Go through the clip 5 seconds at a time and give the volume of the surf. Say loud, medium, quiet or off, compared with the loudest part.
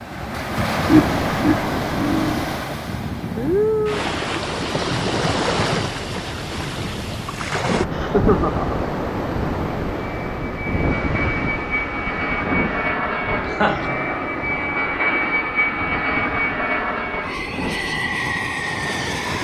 loud, loud, medium, medium.